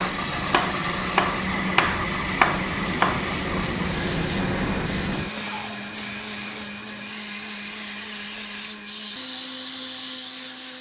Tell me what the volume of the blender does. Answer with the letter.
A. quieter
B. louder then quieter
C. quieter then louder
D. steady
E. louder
A.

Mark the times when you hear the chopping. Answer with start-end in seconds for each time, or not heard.
0.0-3.3.